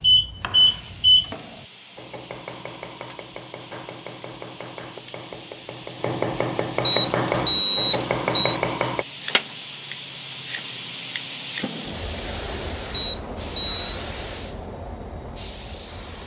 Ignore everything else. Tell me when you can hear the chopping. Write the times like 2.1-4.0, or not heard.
0.3-9.1.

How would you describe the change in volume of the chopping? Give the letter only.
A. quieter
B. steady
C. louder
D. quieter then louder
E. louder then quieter
C.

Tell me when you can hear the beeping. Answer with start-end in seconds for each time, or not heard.
0.0-1.4, 6.8-8.3, 12.9-13.8.